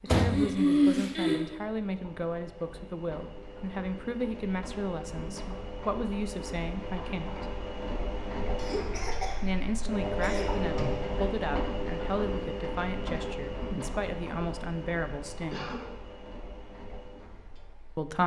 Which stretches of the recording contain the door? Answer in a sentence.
The door can be heard from 0.1 to 1.1 s and from 10.7 to 11.2 s.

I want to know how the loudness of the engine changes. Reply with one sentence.
The volume of the engine goes up, then down.